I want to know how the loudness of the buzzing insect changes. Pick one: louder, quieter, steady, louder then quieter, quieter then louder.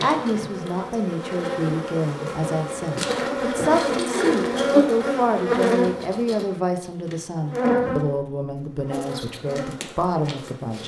louder then quieter.